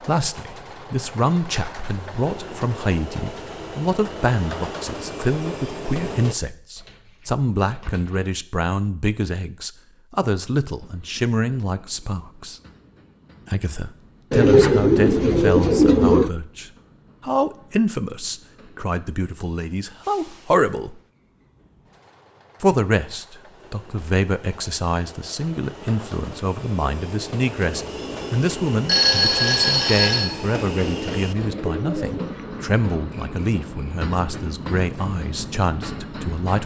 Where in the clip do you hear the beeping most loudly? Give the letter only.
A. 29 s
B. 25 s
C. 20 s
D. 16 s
A.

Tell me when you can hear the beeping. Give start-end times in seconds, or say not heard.
28.9-30.3.